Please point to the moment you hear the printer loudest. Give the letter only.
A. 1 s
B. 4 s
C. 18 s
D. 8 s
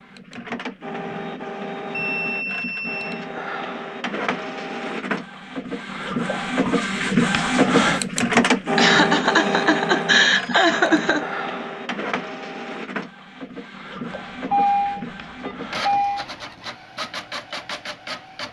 D.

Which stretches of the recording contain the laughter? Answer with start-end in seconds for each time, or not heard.
8.8-11.2.